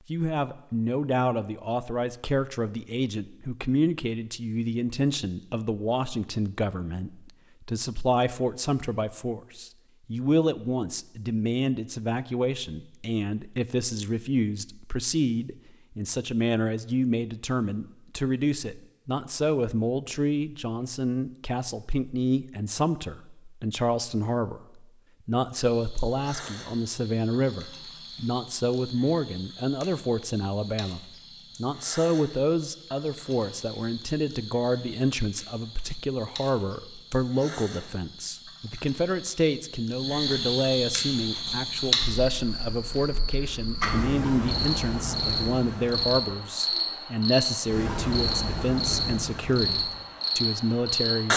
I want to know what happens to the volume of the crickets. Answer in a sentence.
The volume of the crickets goes up.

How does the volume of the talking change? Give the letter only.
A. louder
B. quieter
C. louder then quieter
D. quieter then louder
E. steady
E.